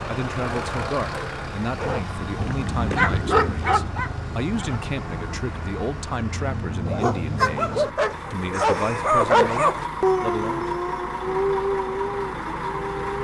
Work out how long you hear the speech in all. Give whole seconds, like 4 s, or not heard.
11 s.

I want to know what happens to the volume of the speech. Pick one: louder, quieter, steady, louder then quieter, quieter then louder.
steady.